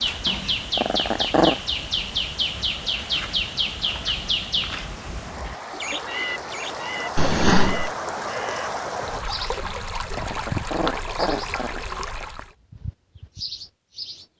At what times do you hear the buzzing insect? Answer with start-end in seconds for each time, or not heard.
not heard.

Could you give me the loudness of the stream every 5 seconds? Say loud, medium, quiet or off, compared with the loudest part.
medium, loud, loud.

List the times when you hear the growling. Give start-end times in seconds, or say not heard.
0.2-1.6, 7.2-7.9, 9.6-12.2.